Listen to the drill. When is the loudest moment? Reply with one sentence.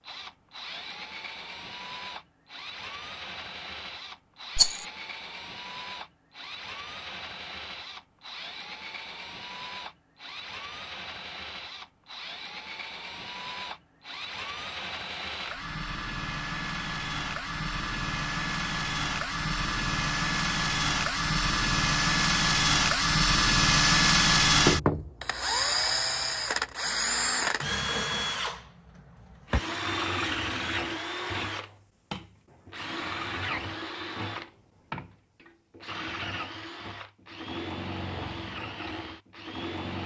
The volume of the drill peaks at 24 seconds.